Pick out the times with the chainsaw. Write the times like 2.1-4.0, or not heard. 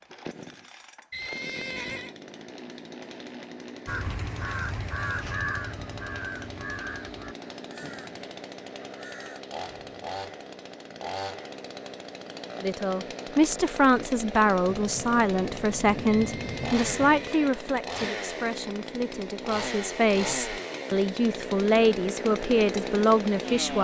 0.0-23.8.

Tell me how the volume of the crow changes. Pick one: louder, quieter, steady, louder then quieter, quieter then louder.
quieter.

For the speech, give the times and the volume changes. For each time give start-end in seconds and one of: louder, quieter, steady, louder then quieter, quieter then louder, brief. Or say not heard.
12.6-23.8 quieter then louder.